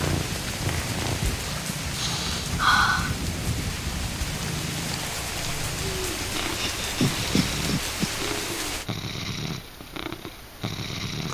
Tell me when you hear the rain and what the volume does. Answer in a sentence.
The rain can be heard from 0.0 to 8.8 s, at a steady volume.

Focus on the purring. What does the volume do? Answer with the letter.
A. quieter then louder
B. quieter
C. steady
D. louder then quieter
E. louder
C.